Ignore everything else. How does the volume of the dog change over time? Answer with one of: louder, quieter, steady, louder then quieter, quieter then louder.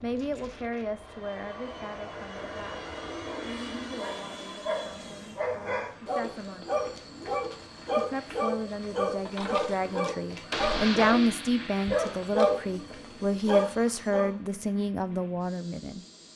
louder.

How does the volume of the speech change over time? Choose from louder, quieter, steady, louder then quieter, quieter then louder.
quieter then louder.